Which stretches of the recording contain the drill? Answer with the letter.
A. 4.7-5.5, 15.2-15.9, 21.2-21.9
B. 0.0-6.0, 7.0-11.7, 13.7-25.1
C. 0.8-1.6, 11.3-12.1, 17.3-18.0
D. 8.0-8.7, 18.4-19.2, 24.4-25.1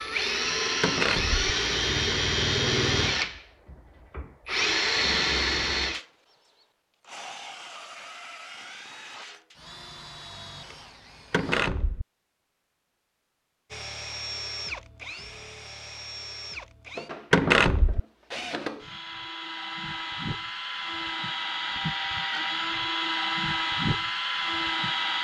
B.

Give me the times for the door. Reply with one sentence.
You can hear the door from 0.8 to 1.6 s, from 11.3 to 12.1 s and from 17.3 to 18.0 s.